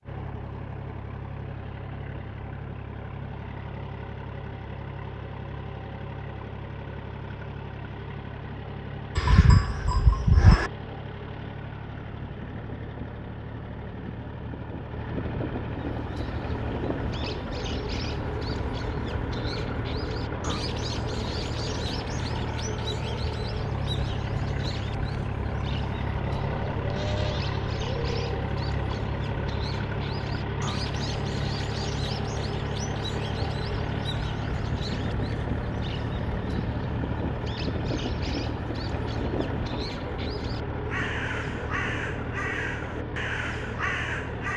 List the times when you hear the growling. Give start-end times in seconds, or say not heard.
not heard.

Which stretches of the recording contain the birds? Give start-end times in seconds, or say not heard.
15.8-44.5.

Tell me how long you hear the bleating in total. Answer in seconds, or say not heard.
4 s.